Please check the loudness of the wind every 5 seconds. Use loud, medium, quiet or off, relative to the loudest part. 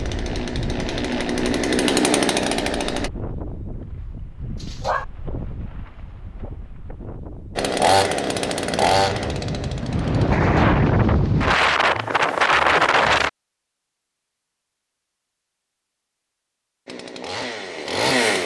quiet, quiet, loud, off.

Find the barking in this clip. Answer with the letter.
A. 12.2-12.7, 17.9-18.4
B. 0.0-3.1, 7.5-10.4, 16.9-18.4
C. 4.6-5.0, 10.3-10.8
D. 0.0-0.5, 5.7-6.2
C.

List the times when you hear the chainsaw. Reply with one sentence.
The chainsaw can be heard from 0.0 to 3.1 s, from 7.5 to 10.4 s and from 16.9 to 18.4 s.